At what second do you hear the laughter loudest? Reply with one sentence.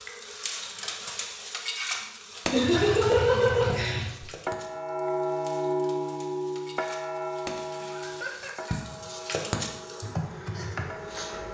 The volume of the laughter peaks at 3 seconds.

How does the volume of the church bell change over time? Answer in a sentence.
The loudness of the church bell goes down.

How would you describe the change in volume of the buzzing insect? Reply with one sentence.
The volume of the buzzing insect goes down, then up.